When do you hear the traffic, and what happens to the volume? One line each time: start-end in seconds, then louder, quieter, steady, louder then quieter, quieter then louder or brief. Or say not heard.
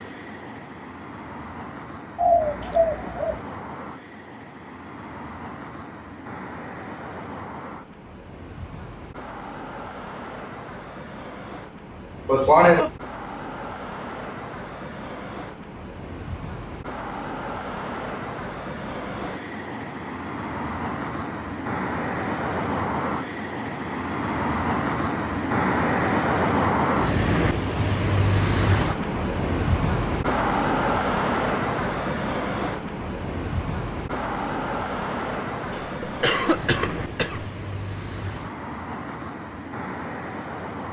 0.0-40.8 louder then quieter.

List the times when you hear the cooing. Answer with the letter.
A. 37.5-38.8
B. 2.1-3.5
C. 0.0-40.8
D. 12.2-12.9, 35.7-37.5
B.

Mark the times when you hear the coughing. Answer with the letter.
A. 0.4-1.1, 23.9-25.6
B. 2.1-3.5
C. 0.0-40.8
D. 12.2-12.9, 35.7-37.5
D.